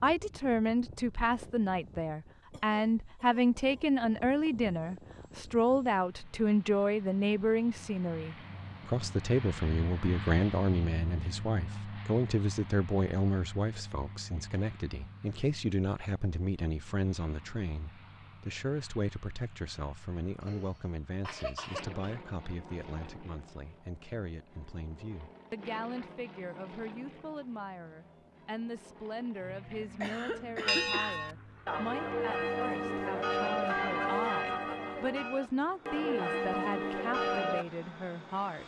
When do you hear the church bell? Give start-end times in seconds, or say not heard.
30.6-37.6.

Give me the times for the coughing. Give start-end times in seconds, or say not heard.
2.5-3.9, 20.4-22.1, 29.8-31.2.